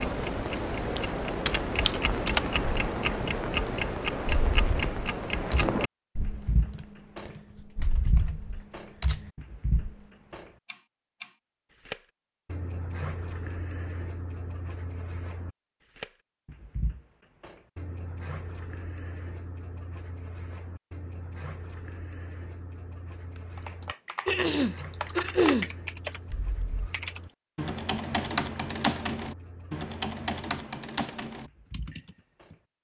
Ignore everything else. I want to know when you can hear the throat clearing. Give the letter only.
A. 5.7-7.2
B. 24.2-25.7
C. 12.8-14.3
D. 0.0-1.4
B.